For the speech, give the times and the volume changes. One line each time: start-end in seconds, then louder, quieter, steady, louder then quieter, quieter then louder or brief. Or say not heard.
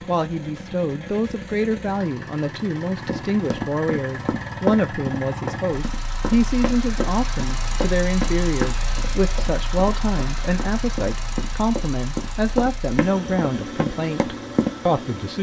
0.1-15.3 steady.